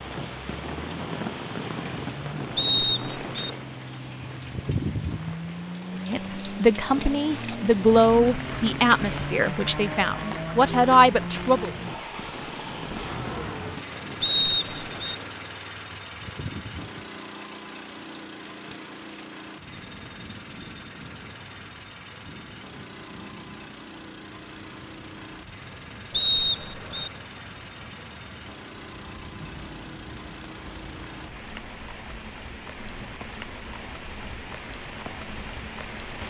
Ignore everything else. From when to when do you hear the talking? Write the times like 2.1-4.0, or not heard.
6.0-11.7.